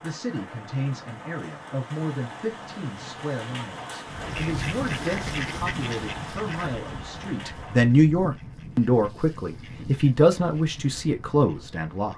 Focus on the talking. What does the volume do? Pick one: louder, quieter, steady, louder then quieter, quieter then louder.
louder.